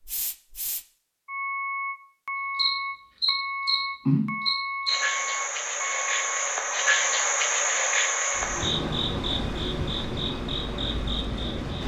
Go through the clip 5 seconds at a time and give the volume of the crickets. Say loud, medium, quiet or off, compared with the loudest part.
loud, loud, medium.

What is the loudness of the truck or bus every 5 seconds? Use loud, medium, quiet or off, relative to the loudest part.
loud, loud, medium.